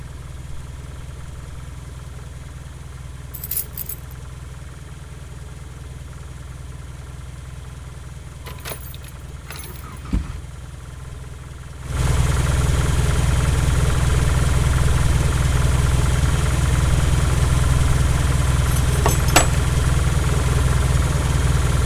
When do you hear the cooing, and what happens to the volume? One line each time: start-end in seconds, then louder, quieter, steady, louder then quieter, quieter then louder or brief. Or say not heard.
not heard.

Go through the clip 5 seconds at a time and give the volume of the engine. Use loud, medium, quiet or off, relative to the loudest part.
quiet, quiet, loud, loud, loud.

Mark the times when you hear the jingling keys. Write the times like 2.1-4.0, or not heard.
3.3-4.0, 8.4-10.4, 18.9-19.6.